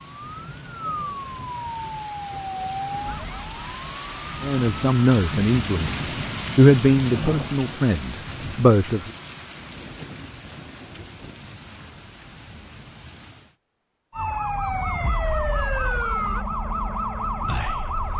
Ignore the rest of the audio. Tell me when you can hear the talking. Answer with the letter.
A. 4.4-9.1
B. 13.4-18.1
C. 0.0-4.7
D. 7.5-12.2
A.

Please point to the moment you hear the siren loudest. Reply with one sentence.
The loudest moment of the siren is at 16 seconds.